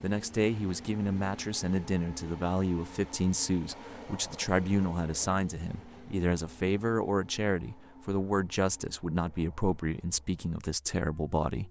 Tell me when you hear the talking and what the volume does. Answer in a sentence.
The talking can be heard from 0.0 to 11.6 s, at a steady volume.